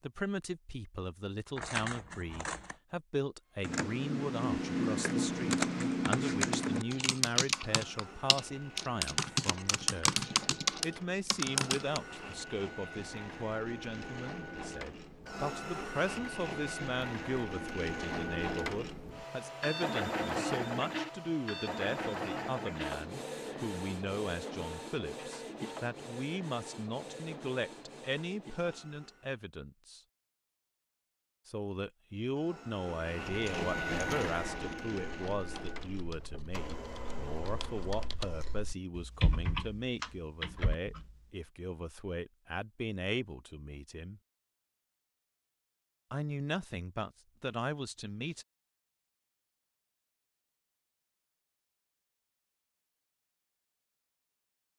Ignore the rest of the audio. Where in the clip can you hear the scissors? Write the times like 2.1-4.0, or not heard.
1.6-2.8.